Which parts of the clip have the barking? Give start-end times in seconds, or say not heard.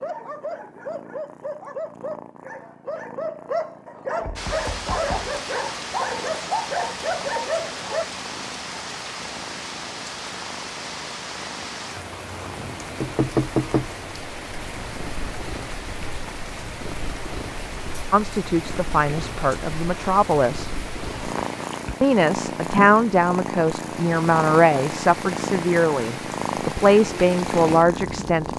0.0-8.1.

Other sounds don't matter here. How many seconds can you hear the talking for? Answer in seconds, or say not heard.
9 s.